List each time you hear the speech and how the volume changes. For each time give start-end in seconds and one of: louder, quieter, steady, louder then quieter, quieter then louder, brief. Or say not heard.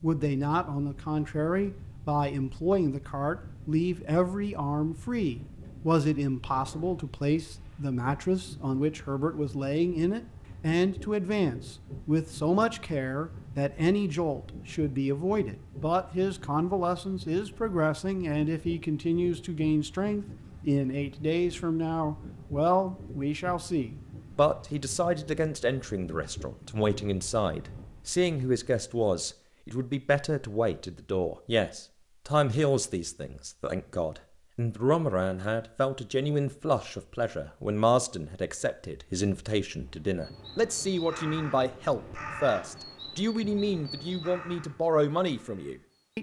0.0-46.1 steady.